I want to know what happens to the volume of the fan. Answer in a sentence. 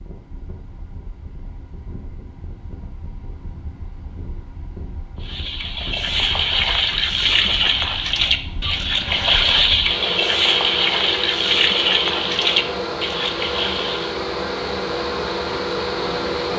The loudness of the fan goes up.